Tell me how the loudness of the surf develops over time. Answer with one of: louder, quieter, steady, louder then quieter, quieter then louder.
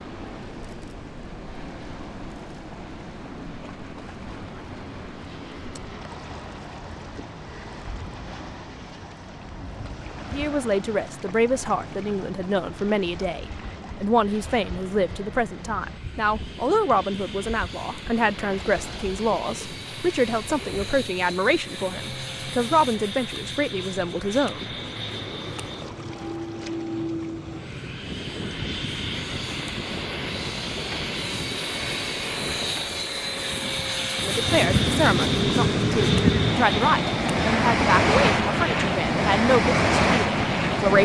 louder.